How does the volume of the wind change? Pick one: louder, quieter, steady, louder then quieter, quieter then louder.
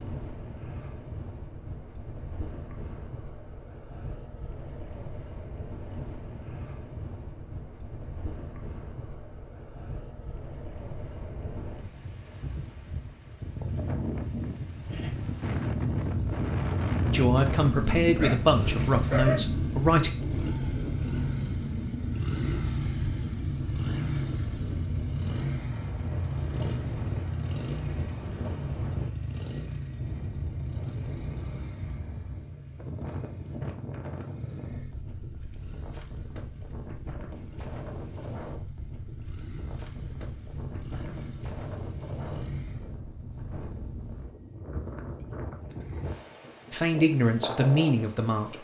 louder then quieter.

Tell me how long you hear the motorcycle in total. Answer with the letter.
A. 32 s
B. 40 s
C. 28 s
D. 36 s
C.